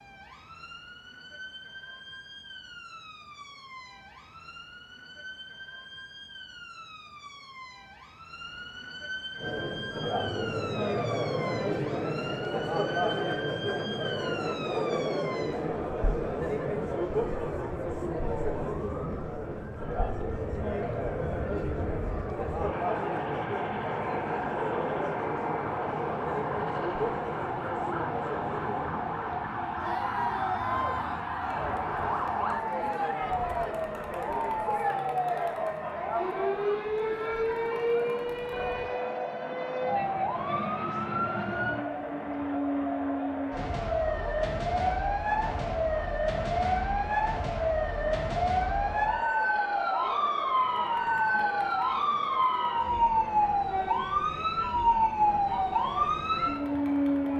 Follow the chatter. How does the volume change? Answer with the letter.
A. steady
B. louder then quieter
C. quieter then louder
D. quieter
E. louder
D.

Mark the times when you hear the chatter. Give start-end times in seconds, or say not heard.
9.3-57.3.